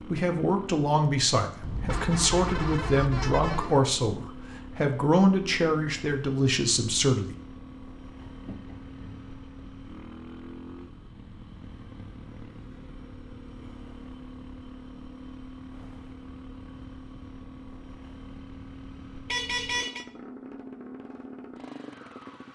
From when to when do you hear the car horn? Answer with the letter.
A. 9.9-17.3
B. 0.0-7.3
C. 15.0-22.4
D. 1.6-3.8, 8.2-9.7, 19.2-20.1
D.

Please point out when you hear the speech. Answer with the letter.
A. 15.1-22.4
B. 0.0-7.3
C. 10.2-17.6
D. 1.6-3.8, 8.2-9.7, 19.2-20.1
B.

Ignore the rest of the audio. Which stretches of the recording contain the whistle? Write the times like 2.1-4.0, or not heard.
not heard.